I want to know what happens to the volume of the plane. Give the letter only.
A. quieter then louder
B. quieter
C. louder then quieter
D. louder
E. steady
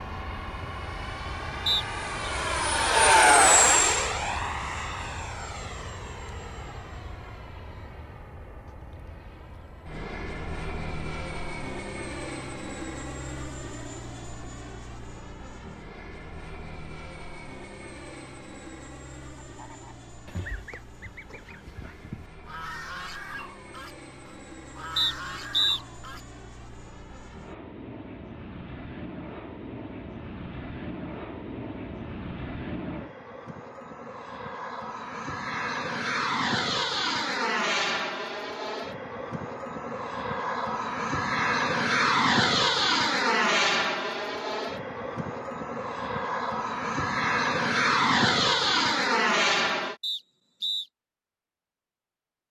A.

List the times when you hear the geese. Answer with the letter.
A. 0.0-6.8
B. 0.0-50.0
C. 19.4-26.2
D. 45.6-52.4
C.